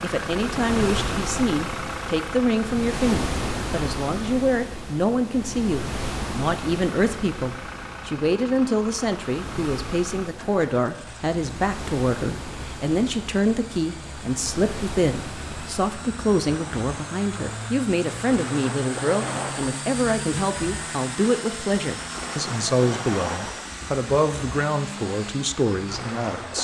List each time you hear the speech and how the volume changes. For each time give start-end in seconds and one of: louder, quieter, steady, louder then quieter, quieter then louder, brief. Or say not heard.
0.0-26.5 steady.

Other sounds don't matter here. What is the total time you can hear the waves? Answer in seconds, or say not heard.
26 s.